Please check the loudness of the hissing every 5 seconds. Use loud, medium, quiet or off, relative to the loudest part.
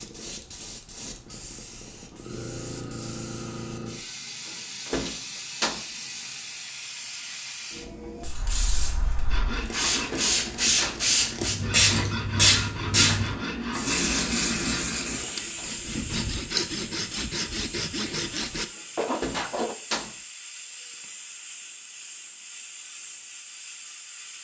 quiet, medium, loud, quiet, quiet.